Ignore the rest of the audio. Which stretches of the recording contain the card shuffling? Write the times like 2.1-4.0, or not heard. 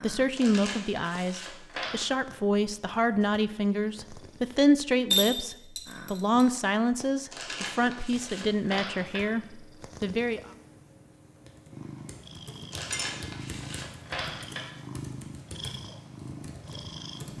0.3-1.9, 7.3-9.3, 12.7-14.7.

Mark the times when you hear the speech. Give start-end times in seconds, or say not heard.
0.0-10.4.